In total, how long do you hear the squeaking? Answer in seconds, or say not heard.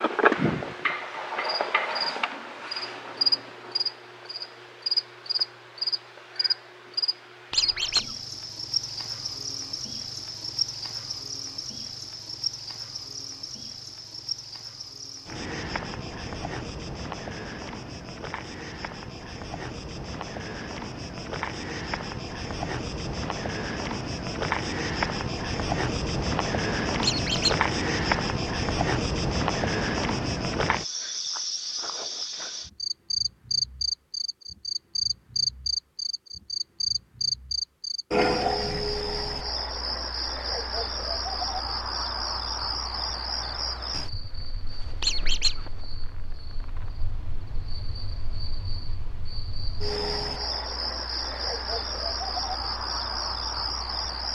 2 s.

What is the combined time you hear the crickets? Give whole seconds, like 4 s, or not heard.
54 s.